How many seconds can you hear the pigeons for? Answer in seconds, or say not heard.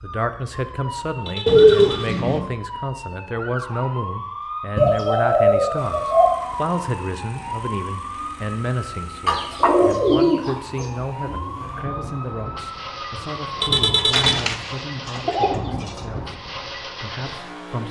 6 s.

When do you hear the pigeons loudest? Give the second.
2 s.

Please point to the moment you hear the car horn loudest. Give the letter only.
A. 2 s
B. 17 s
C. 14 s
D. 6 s
C.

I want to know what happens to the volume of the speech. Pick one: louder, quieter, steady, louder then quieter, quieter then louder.
quieter.